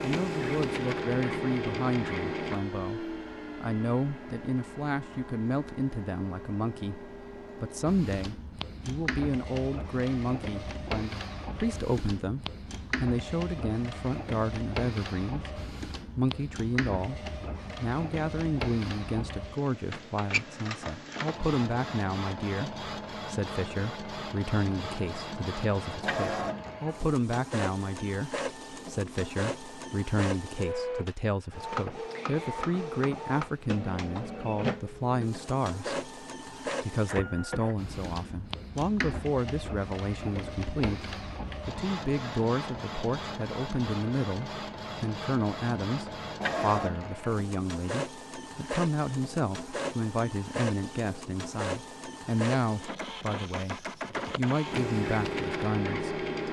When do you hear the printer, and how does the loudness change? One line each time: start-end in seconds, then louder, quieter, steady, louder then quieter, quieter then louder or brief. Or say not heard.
0.0-56.4 steady.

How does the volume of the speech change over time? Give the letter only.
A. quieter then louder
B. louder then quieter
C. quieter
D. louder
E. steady
E.